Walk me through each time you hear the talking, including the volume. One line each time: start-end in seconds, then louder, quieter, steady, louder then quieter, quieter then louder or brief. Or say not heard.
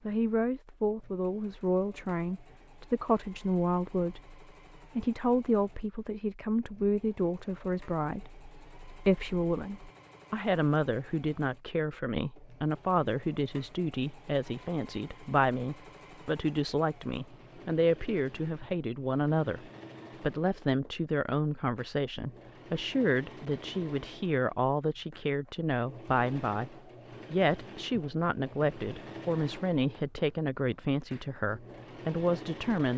0.1-32.9 steady.